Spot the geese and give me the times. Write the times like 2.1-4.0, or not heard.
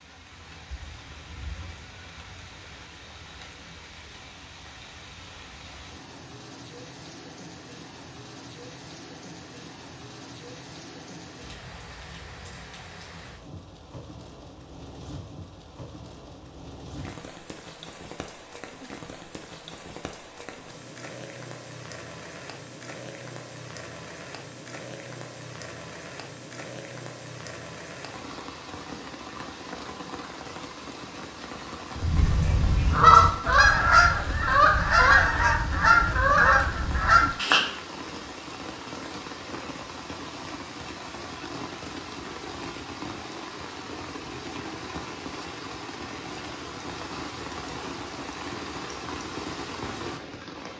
31.9-37.7.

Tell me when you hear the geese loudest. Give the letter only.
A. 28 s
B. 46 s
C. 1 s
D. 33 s
D.